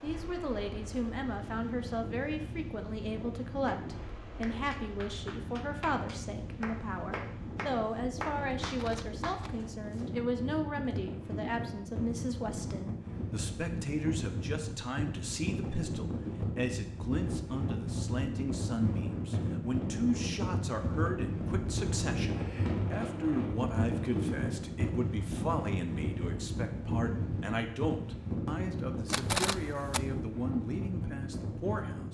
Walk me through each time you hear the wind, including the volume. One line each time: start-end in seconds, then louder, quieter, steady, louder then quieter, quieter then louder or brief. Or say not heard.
0.0-32.0 louder.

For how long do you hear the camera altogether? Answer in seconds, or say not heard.
2 s.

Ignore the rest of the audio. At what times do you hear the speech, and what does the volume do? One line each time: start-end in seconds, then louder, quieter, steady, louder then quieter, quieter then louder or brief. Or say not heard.
0.0-32.0 steady.